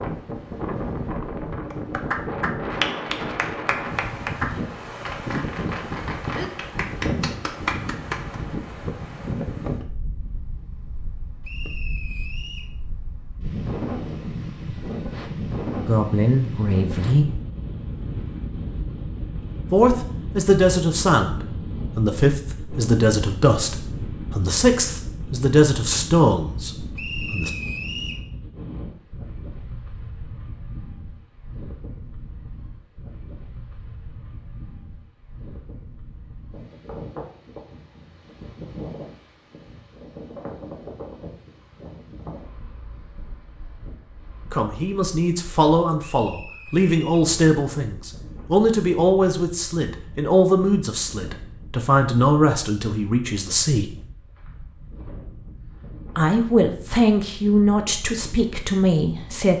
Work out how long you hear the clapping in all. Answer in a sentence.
You can hear the clapping for 7 seconds altogether.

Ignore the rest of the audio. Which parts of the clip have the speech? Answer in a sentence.
The speech can be heard from 15.8 to 17.4 s, from 19.7 to 27.5 s, from 44.5 to 53.9 s and from 56.1 to 59.5 s.